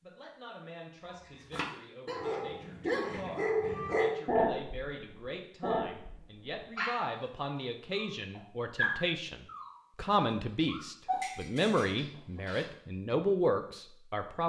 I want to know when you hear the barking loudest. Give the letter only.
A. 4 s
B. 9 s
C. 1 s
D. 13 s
A.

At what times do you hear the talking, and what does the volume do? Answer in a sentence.
The talking can be heard from 0.0 to 14.4 s, getting louder.